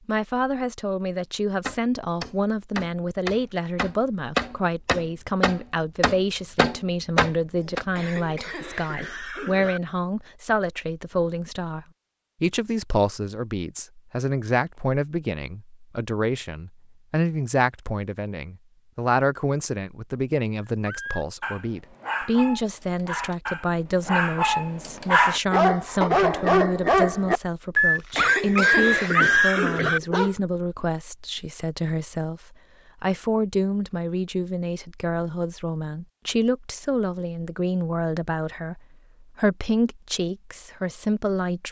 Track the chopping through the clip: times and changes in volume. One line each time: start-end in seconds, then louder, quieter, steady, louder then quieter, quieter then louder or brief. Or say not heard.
1.6-7.8 louder.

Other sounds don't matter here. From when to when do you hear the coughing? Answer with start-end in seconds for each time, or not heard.
7.9-9.8, 28.1-30.0.